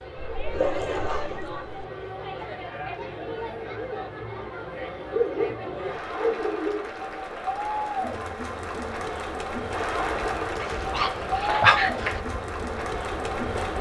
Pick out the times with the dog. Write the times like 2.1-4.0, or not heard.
0.3-1.7, 5.1-6.9, 10.6-12.2.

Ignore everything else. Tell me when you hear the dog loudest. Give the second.
12 s.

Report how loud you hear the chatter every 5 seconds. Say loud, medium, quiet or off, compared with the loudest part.
medium, loud, loud.